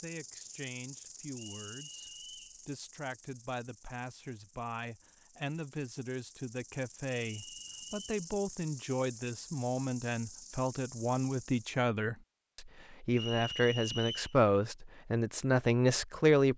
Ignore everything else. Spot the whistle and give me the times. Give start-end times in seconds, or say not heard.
1.4-2.6, 7.3-8.2, 13.1-14.3.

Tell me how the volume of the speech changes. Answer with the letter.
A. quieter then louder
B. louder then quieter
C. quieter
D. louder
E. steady
D.